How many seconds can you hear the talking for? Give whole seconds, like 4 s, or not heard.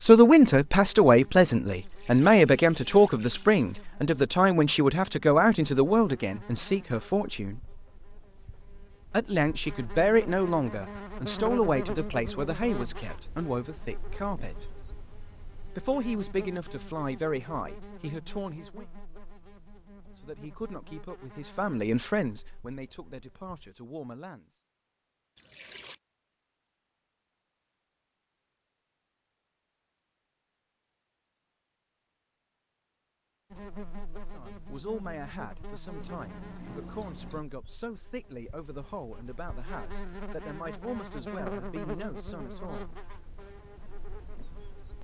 29 s.